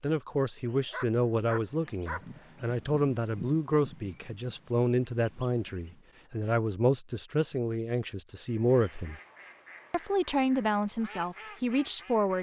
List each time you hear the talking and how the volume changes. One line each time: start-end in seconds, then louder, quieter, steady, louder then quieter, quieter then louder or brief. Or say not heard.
0.0-9.2 steady
9.9-12.3 brief.